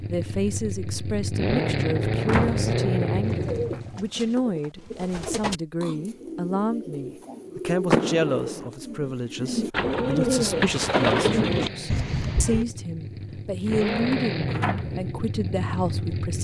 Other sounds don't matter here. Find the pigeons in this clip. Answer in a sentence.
You can hear the pigeons from 3.2 to 12.7 s.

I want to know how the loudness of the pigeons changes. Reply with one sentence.
The loudness of the pigeons goes up.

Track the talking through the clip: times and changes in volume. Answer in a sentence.
You can hear the talking from 0.1 to 16.4 s, at a steady volume.